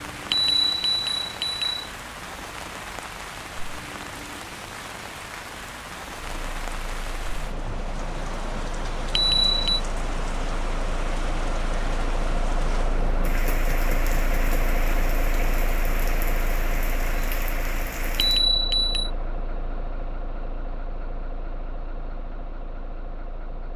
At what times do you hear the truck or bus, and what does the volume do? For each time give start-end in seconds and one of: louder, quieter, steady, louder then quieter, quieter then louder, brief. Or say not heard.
6.1-23.7 louder then quieter.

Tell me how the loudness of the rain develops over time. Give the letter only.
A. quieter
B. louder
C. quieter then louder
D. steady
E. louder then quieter
D.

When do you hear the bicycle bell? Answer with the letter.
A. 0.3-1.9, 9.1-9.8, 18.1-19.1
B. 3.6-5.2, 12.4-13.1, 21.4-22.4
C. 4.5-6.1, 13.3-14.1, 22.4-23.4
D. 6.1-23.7
A.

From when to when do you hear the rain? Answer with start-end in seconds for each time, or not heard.
0.0-18.5.